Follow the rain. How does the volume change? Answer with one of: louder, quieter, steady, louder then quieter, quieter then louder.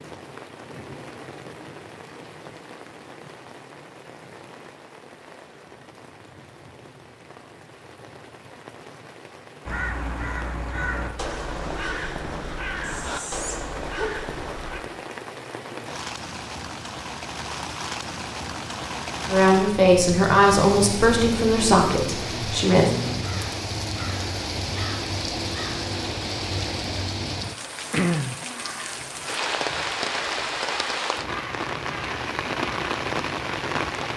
louder.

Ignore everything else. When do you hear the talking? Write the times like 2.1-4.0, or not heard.
19.2-22.9.